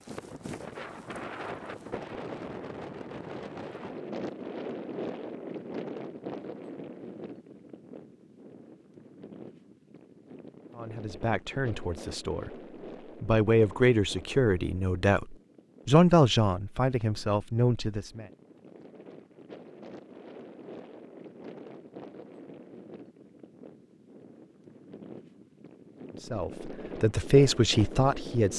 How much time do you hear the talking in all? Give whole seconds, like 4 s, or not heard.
9 s.